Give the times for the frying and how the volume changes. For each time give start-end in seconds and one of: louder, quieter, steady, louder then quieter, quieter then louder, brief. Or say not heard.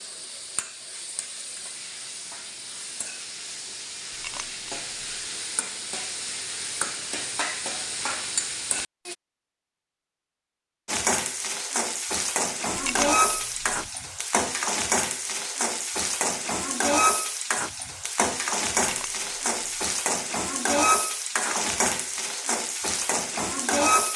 0.0-9.2 louder
10.8-24.1 steady.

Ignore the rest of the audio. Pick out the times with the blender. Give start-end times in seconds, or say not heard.
not heard.